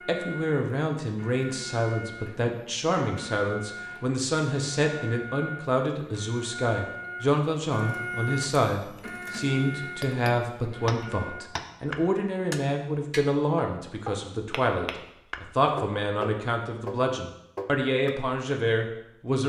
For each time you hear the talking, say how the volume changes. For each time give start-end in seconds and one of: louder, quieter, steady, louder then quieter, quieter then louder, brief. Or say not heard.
0.1-19.4 steady.